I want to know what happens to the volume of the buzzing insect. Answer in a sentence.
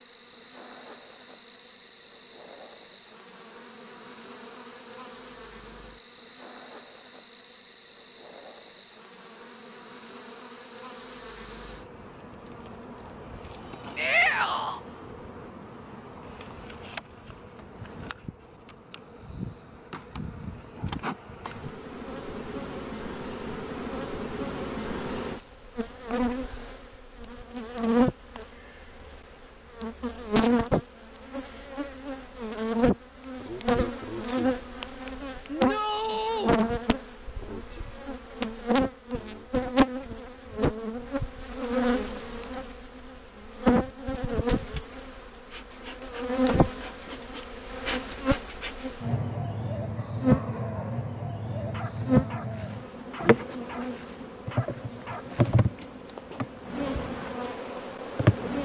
The volume of the buzzing insect goes up.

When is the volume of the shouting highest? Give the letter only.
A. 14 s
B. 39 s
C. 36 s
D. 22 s
A.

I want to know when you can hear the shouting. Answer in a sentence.
The shouting can be heard from 13.9 to 14.8 s and from 35.5 to 36.5 s.